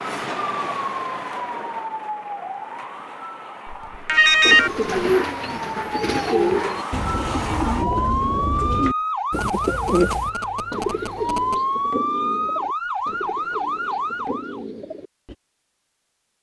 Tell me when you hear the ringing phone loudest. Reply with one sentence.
The volume of the ringing phone peaks at 4 seconds.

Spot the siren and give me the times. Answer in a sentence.
The siren can be heard from 0.0 to 14.7 s.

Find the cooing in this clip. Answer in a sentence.
You can hear the cooing from 4.4 to 15.3 s.